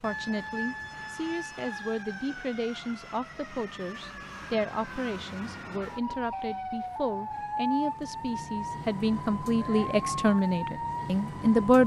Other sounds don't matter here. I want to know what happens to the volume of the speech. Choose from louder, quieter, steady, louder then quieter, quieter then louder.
louder.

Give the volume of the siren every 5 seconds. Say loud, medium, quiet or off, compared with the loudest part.
medium, loud, loud.